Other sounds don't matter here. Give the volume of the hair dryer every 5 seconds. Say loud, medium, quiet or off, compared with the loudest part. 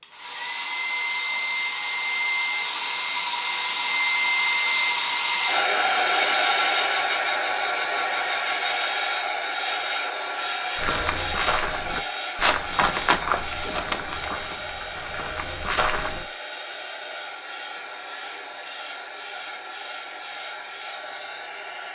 loud, loud, medium, quiet, quiet.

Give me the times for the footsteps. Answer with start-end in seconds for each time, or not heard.
10.8-16.2.